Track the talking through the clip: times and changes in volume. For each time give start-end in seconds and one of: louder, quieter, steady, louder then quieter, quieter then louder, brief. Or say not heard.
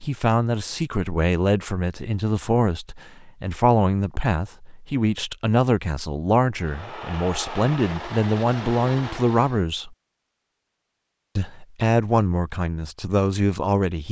0.0-9.9 steady
11.3-14.0 brief.